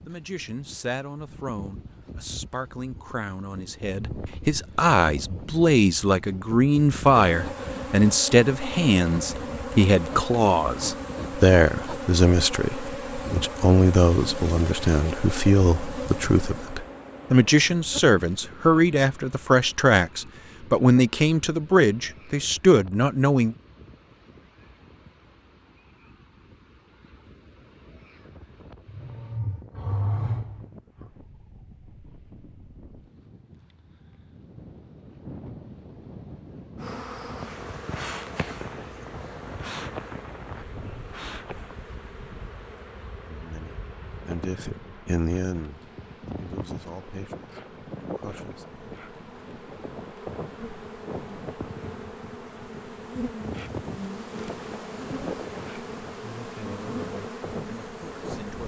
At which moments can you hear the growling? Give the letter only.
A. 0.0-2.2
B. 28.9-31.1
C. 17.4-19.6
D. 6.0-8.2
B.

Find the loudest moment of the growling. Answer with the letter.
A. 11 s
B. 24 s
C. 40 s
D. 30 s
D.